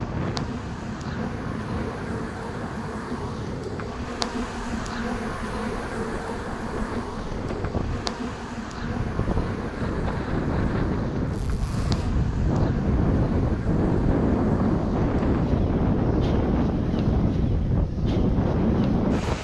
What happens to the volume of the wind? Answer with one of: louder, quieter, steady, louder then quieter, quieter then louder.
louder.